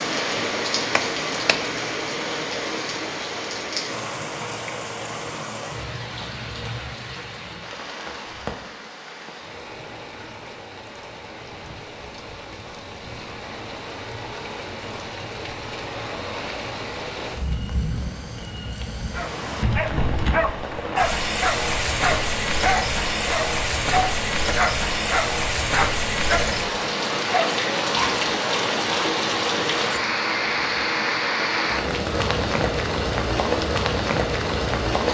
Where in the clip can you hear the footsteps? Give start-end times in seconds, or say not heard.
not heard.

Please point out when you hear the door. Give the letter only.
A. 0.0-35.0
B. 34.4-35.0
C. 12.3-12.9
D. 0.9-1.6
D.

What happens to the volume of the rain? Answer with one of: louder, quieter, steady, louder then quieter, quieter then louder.
quieter then louder.